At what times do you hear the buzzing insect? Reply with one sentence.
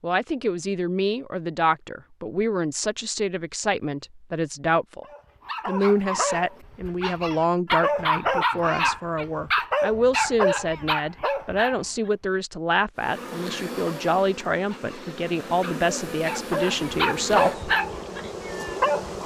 The buzzing insect can be heard from 12.9 to 19.2 s.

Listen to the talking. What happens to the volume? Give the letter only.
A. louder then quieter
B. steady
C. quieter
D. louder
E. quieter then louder
B.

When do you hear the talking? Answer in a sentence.
You can hear the talking from 0.0 to 5.0 s and from 5.7 to 17.7 s.